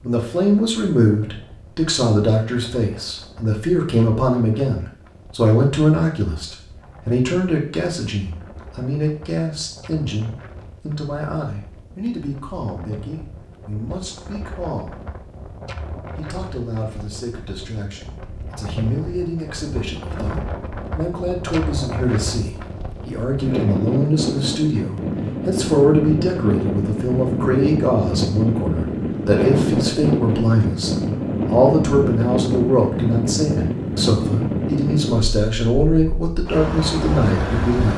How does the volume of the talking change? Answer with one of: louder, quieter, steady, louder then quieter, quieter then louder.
quieter then louder.